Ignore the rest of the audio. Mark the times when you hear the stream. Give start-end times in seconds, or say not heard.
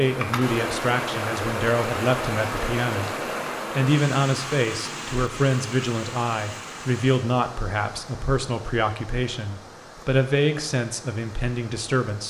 0.0-12.2.